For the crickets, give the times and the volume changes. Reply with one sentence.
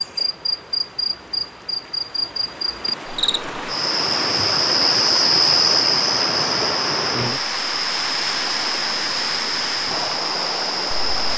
You can hear the crickets from 0.0 to 11.3 s, getting louder then quieter.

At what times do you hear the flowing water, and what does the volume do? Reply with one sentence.
You can hear the flowing water from 0.0 to 11.3 s, getting louder.